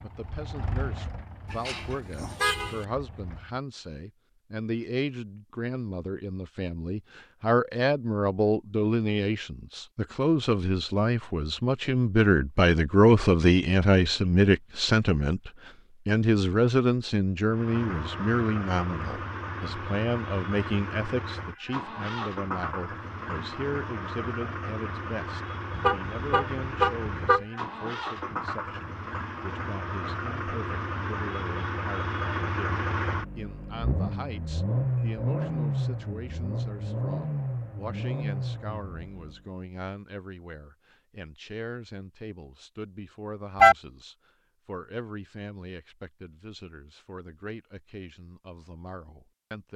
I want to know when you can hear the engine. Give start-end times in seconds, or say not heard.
0.0-3.6, 17.4-39.5.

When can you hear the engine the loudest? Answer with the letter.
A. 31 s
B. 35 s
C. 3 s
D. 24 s
B.